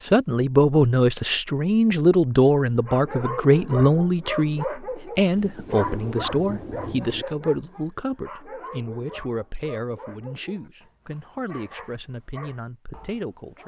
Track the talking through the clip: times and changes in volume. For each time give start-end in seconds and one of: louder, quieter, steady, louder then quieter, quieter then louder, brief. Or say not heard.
0.0-13.6 quieter.